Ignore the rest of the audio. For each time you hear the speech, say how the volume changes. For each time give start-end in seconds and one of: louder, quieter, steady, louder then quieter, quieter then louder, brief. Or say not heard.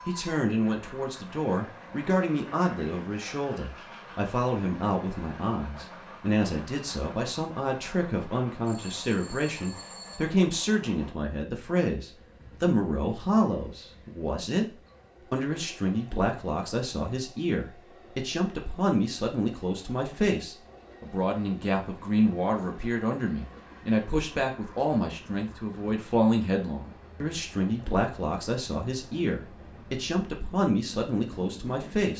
0.1-32.1 steady.